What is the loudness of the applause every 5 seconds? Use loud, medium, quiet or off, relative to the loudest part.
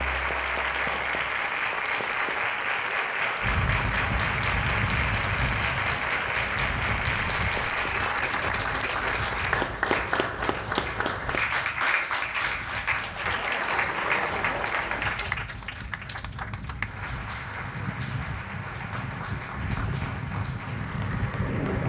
loud, loud, loud, medium, medium.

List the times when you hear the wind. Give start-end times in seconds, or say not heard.
3.4-21.8.